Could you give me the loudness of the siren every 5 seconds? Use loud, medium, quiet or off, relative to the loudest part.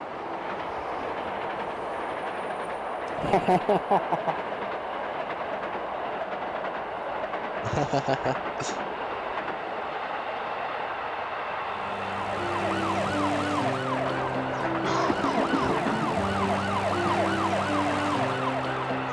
off, off, loud, loud.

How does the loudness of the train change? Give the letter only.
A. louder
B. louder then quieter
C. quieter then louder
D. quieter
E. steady
E.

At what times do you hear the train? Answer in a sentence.
You can hear the train from 0.0 to 19.0 s.